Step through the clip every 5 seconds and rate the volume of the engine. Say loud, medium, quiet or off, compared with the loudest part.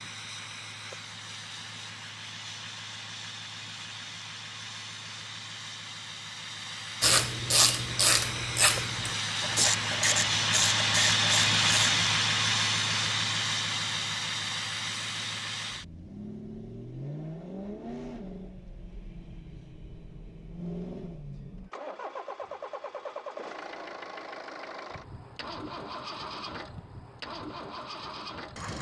quiet, medium, loud, quiet, quiet, quiet.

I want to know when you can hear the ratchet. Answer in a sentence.
The ratchet can be heard from 7.0 to 11.9 s.